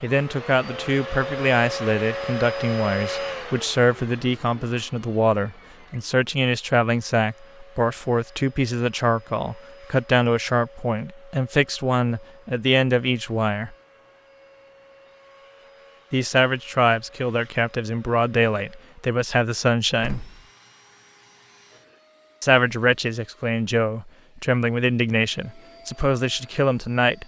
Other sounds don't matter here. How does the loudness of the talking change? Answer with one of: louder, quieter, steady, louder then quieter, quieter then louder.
steady.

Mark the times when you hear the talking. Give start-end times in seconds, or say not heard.
0.0-13.8, 16.1-20.2, 22.4-27.2.